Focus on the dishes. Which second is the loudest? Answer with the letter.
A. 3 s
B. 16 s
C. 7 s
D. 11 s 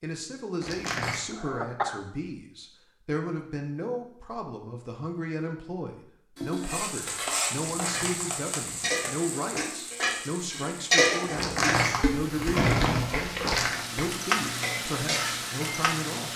D.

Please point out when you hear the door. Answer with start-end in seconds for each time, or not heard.
0.6-1.2, 7.7-8.9, 11.3-13.8.